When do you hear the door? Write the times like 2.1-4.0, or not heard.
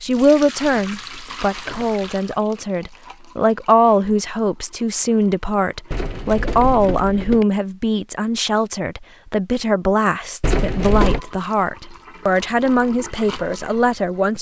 0.1-2.1, 5.9-7.5, 10.4-11.2.